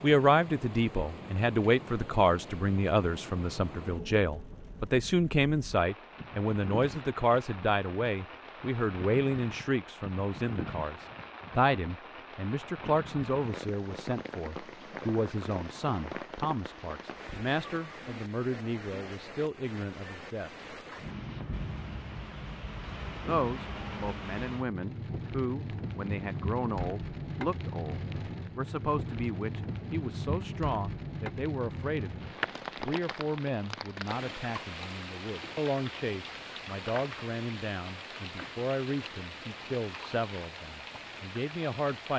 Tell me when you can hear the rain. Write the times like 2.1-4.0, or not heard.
0.0-42.1.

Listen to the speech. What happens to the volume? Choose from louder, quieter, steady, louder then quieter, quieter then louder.
quieter.